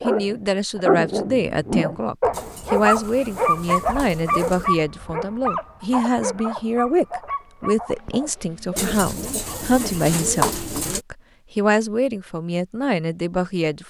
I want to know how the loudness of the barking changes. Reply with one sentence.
The volume of the barking goes down.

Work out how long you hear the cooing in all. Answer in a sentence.
You can hear the cooing for 5 seconds altogether.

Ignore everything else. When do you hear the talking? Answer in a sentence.
The talking can be heard from 0.0 to 13.8 s.